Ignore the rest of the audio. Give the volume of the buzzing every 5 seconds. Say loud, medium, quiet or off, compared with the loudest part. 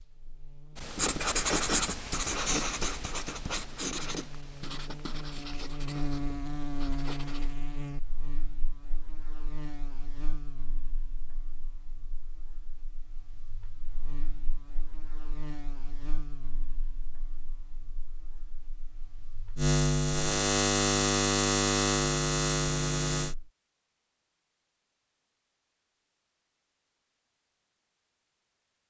quiet, quiet, quiet, medium, loud, off.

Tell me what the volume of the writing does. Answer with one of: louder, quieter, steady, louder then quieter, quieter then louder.
quieter.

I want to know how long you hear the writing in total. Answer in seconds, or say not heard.
7 s.